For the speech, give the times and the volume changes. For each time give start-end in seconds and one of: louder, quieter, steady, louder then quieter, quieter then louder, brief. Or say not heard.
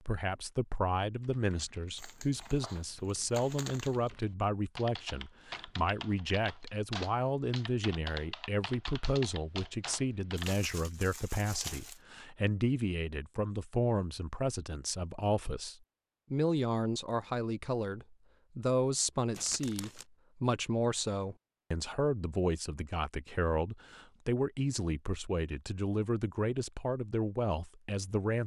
0.1-28.4 steady.